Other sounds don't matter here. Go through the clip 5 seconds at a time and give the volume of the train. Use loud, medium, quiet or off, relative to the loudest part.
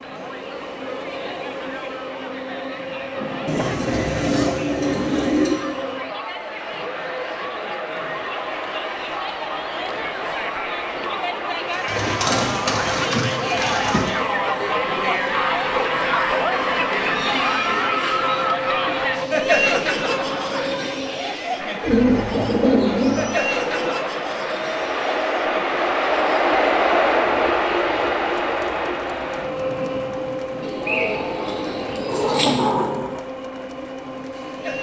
medium, medium, medium, medium, medium, loud, medium.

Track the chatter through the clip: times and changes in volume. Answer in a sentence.
You can hear the chatter from 0.0 to 34.7 s, getting louder then quieter.